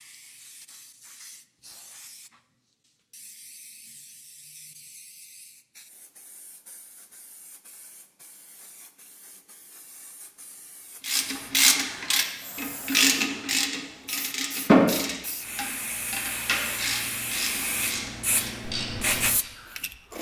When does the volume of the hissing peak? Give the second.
19 s.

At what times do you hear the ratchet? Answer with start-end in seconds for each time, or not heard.
11.1-19.5.